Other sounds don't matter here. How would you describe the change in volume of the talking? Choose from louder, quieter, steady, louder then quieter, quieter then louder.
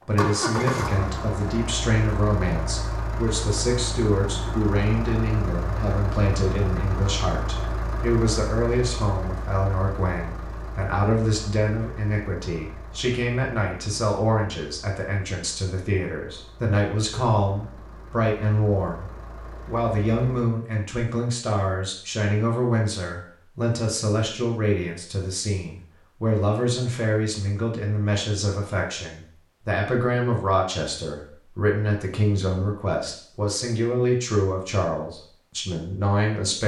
steady.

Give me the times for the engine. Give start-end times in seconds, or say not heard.
0.0-20.5.